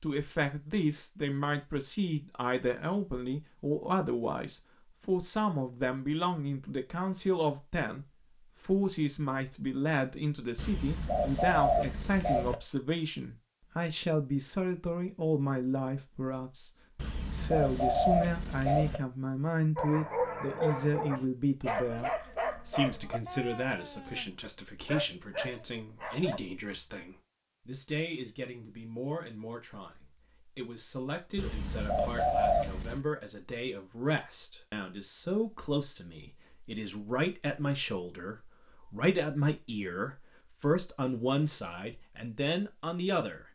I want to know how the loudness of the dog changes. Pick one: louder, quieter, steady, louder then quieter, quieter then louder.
quieter then louder.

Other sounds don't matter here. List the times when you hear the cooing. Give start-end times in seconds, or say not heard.
10.6-12.6, 16.9-19.0, 31.4-33.0.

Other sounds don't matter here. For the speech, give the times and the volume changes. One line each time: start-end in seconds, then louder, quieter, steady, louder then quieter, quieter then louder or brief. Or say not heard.
0.0-16.7 steady
17.4-43.5 quieter then louder.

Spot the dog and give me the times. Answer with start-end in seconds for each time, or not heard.
19.8-26.4.